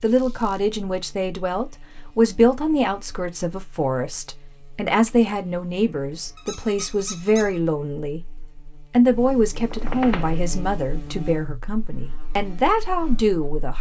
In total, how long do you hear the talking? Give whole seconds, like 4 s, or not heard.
14 s.